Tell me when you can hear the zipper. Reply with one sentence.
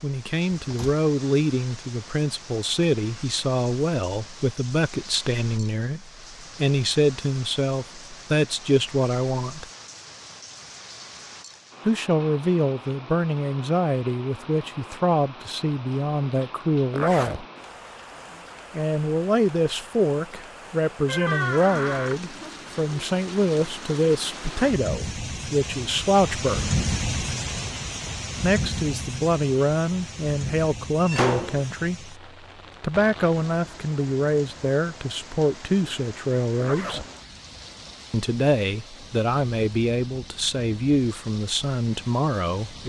The zipper can be heard from 16.9 to 17.4 s and from 36.6 to 37.1 s.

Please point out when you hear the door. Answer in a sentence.
You can hear the door from 0.6 to 1.0 s, from 21.1 to 22.1 s and from 31.0 to 31.7 s.